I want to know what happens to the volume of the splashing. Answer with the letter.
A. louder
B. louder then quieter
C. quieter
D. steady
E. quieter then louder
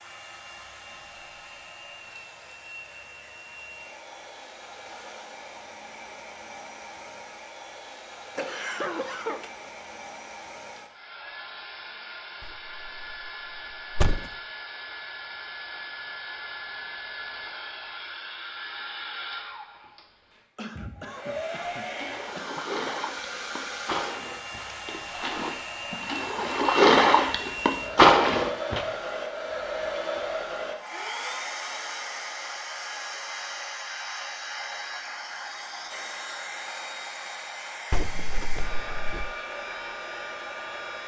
A.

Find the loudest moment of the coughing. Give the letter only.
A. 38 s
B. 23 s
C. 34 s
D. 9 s
D.